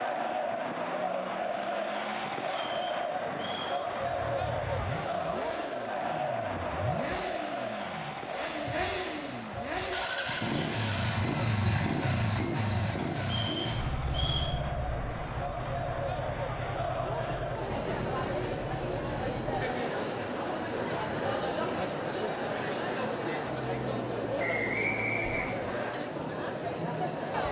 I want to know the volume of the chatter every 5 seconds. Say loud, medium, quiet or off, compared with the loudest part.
loud, loud, medium, loud, loud, loud.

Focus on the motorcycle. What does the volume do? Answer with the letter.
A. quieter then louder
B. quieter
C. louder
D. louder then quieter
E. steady
D.